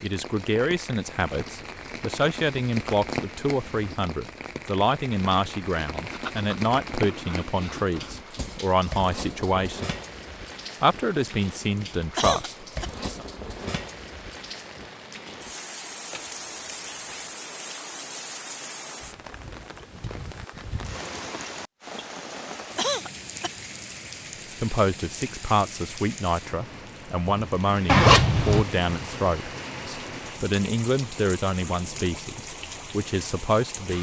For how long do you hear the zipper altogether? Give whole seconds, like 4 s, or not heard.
4 s.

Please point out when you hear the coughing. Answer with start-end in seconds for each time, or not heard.
12.2-12.9, 22.8-23.6.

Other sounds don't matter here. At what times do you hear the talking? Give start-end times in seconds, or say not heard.
0.0-9.9, 10.8-13.2, 24.6-33.9.